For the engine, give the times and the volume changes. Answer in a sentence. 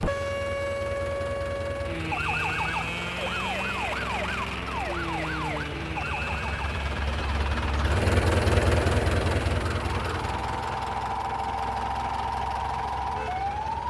The engine can be heard from 0.0 to 13.8 s, getting louder then quieter.